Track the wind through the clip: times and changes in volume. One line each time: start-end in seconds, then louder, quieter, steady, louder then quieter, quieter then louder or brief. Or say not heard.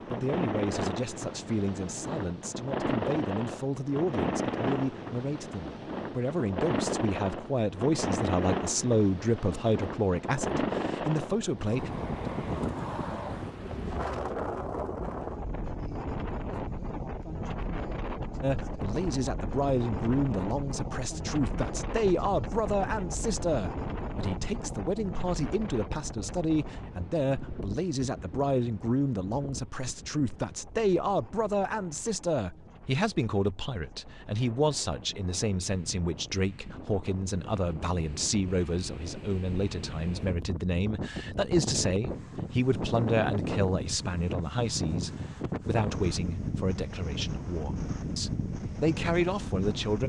0.0-50.0 quieter then louder.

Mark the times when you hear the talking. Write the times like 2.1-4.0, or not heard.
0.1-11.9, 18.4-50.0.